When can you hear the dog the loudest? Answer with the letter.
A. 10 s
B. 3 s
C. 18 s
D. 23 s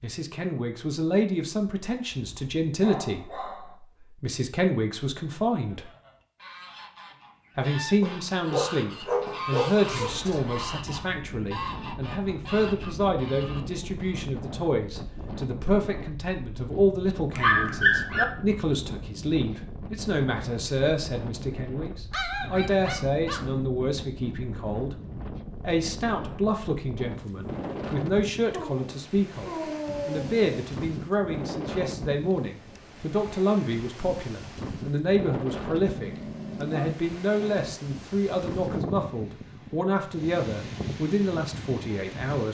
C.